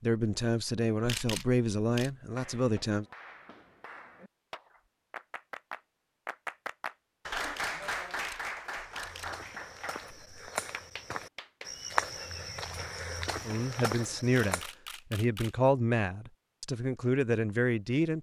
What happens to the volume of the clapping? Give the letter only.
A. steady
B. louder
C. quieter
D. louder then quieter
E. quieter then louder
D.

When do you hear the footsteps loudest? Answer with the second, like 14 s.
12 s.